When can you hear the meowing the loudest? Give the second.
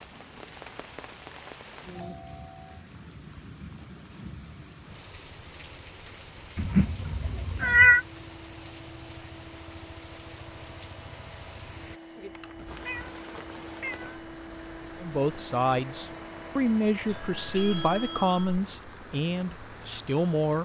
8 s.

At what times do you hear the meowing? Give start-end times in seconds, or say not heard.
6.5-8.0, 12.3-14.2.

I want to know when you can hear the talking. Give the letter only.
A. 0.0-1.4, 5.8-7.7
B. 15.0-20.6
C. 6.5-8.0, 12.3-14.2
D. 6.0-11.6
B.